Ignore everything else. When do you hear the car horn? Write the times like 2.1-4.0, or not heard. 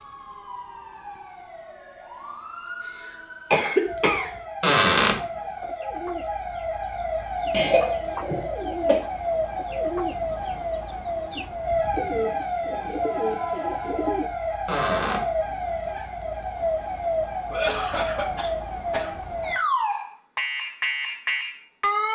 not heard.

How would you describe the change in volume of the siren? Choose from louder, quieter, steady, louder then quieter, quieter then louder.
louder.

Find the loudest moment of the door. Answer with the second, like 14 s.
5 s.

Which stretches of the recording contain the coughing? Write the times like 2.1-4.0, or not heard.
3.5-4.8, 7.5-9.0, 17.5-19.1.